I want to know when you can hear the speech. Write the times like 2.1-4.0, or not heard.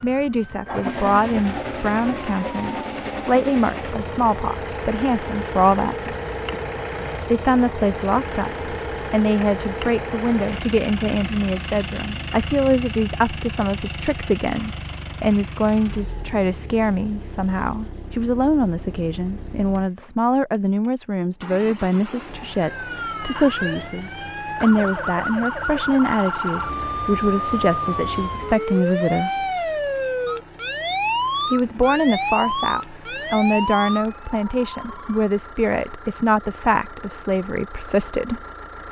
0.0-6.2, 7.2-29.3, 31.5-38.4.